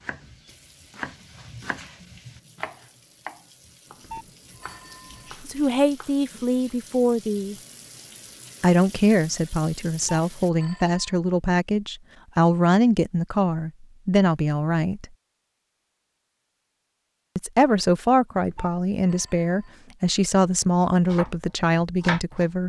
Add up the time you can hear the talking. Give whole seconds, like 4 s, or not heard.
14 s.